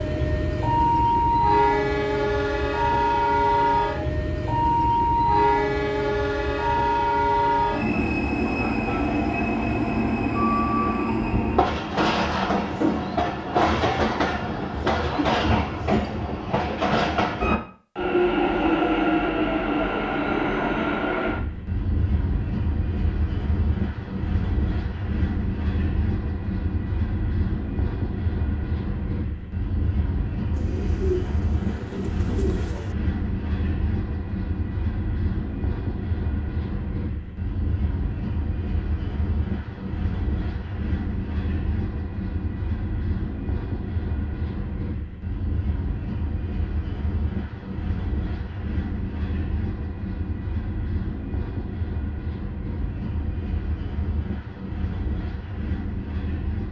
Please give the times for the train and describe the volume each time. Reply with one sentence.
The train can be heard from 0.0 to 56.6 s, getting quieter.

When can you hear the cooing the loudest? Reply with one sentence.
The loudest moment of the cooing is at 31 seconds.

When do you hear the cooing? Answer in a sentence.
The cooing can be heard from 30.5 to 33.0 s.